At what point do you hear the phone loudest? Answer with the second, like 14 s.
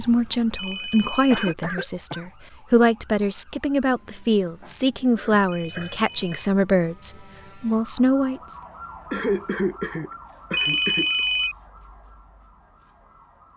11 s.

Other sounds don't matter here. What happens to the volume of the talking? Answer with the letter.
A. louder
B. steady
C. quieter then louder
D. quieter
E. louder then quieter
B.